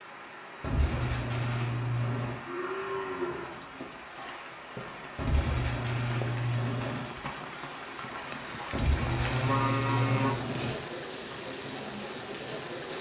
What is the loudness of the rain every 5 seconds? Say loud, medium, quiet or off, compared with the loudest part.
medium, loud, loud.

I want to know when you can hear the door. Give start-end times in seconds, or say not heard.
0.6-2.4, 5.2-7.2, 8.7-10.8.